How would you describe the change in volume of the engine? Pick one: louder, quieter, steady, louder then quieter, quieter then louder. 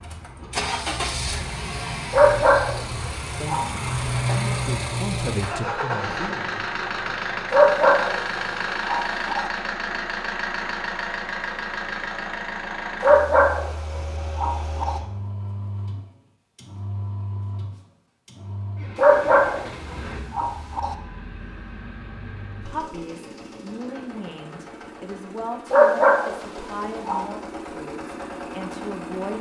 quieter.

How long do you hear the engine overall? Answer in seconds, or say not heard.
29 s.